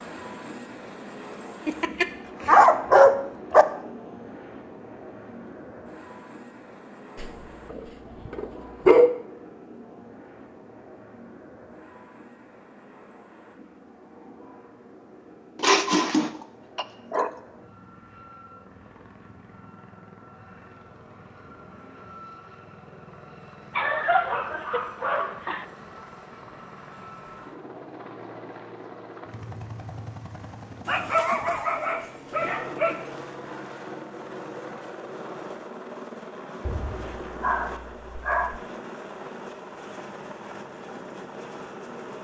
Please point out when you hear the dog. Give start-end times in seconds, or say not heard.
1.6-3.6, 7.2-9.2, 15.6-17.3, 23.8-25.6, 30.9-33.1, 36.6-38.6.